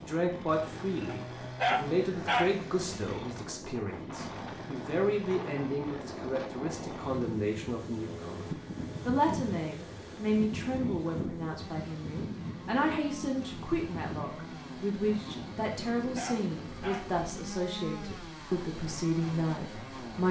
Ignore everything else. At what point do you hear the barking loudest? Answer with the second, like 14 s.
2 s.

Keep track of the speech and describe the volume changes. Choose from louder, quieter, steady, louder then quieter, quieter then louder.
steady.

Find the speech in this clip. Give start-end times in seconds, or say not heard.
0.0-20.2.